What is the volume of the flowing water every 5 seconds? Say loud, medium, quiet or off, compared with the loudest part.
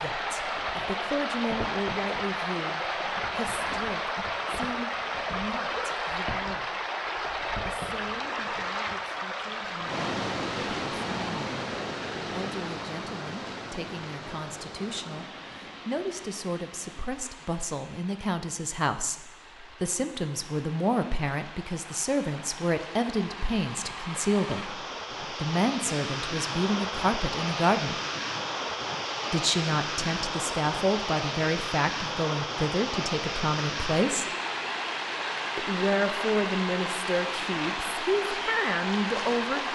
loud, loud, loud, quiet, medium, loud, loud, loud.